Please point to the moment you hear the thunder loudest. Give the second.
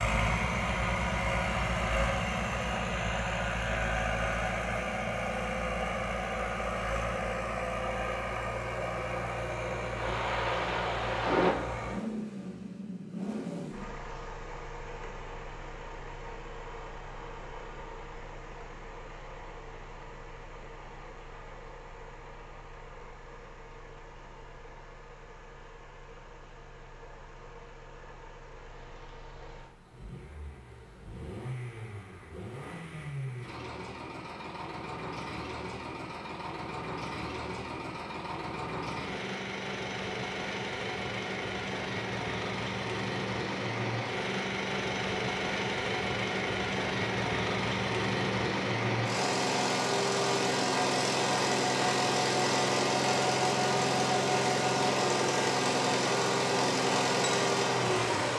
11 s.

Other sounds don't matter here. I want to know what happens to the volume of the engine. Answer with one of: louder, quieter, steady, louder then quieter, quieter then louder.
quieter then louder.